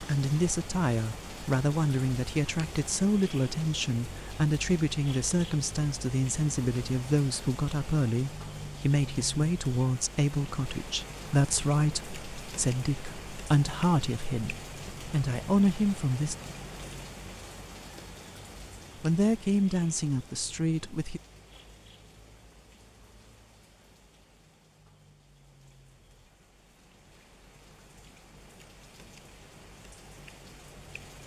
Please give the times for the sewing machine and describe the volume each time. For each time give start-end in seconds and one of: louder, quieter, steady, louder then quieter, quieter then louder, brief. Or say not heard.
not heard.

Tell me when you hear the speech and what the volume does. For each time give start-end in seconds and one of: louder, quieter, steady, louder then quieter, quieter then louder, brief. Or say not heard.
0.0-16.4 steady
19.0-21.2 brief.